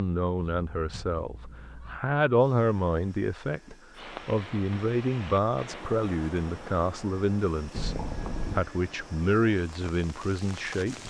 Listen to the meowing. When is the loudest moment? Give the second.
8 s.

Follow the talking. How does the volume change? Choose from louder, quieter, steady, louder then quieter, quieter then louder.
steady.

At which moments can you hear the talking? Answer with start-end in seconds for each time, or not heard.
0.0-11.0.